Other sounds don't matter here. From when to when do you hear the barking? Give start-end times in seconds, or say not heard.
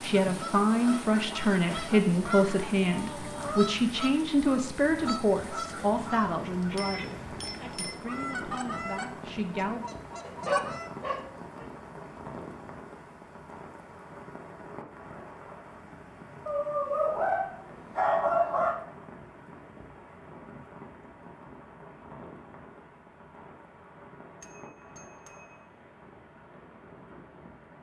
10.2-11.7, 16.4-18.8.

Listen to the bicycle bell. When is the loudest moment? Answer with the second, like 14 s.
7 s.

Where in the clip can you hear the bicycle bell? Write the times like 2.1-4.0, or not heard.
6.8-8.0, 24.4-25.6.